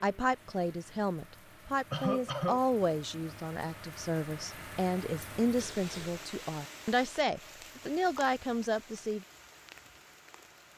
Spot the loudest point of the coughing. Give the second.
2 s.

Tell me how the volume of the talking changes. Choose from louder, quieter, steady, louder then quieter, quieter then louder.
steady.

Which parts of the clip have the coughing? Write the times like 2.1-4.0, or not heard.
1.9-2.6, 5.5-6.2.